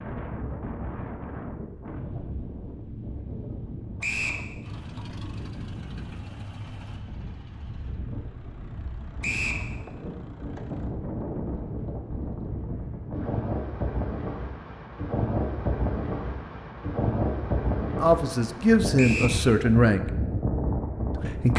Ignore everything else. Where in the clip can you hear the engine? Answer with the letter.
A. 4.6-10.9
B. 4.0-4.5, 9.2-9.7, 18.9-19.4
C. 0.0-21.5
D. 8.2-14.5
A.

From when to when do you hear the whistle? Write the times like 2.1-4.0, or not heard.
4.0-4.5, 9.2-9.7, 18.9-19.4.